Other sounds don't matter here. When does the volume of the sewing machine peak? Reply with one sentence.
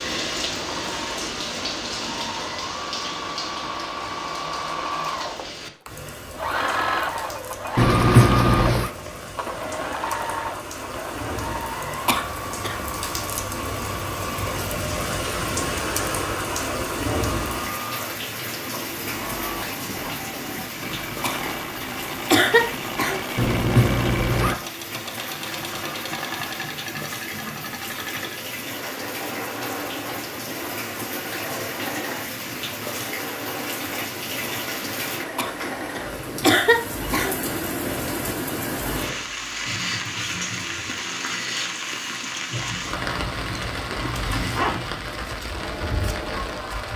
The volume of the sewing machine peaks at 8 seconds.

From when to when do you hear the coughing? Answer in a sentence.
The coughing can be heard from 12.1 to 12.8 s, from 21.2 to 23.2 s and from 35.4 to 37.4 s.